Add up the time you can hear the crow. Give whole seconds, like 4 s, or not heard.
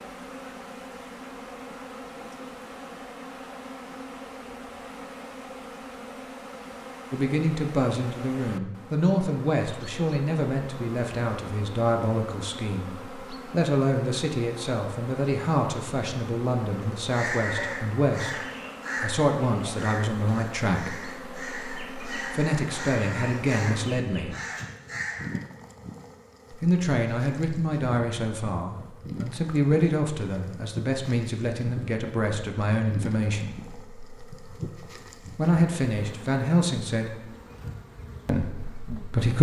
8 s.